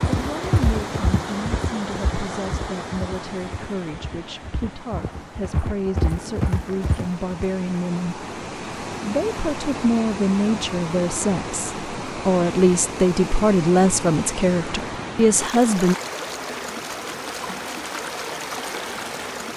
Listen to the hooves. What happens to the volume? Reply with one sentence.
The loudness of the hooves goes down, then up.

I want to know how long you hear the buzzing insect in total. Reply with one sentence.
The buzzing insect can't be heard in this clip.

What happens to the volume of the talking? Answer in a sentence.
The loudness of the talking goes up.